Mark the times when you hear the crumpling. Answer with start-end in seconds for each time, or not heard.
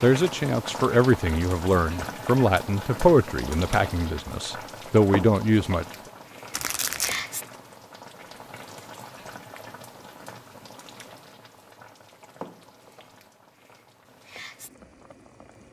6.5-7.2.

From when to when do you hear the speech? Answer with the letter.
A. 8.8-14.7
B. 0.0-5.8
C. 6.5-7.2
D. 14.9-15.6
B.